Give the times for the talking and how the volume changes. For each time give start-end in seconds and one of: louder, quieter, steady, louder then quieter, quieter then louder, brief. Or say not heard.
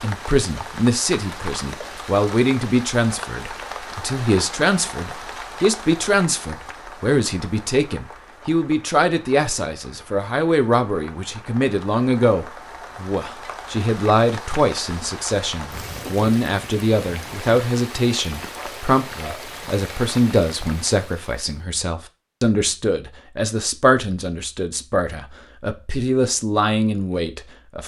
0.0-27.8 steady.